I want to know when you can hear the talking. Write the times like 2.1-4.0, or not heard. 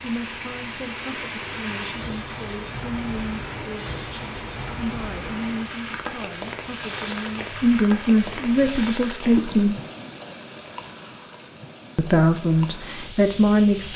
0.0-9.8, 11.9-13.9.